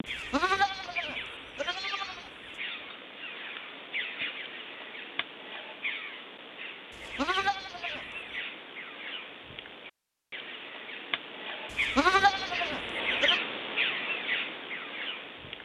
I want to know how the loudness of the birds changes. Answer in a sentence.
The volume of the birds goes up.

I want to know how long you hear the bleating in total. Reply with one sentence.
You can hear the bleating for 5 seconds altogether.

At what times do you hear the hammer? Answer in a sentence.
You can't hear the hammer here.